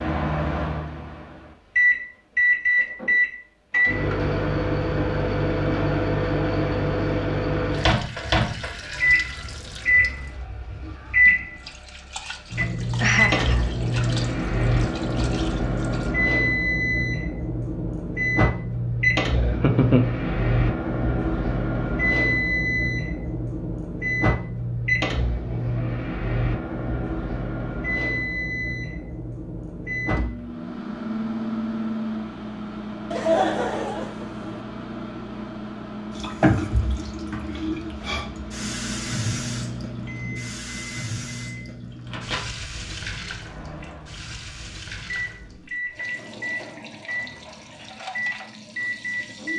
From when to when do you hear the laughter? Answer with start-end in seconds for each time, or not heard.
12.9-13.7, 19.3-20.2, 33.1-34.6.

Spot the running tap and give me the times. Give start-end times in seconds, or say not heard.
7.7-16.1, 36.1-49.5.